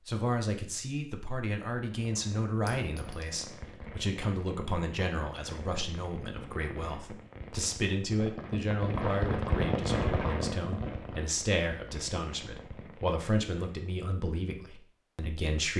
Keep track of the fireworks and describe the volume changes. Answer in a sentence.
The loudness of the fireworks goes up, then down.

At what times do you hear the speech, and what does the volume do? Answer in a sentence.
The speech can be heard from 0.1 to 15.7 s, at a steady volume.